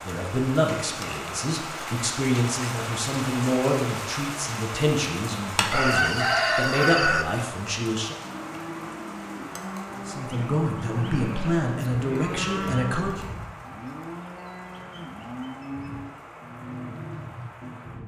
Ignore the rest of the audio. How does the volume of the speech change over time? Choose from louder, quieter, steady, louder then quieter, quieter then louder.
steady.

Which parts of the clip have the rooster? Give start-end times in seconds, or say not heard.
5.7-7.2.